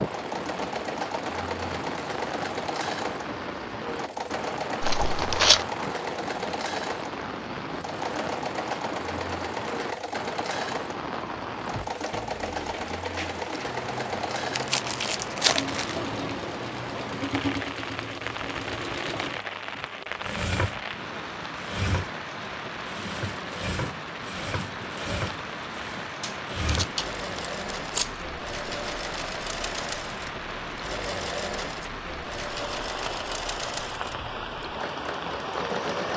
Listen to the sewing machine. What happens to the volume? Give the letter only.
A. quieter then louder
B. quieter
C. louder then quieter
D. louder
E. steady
E.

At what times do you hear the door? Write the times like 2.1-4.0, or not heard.
not heard.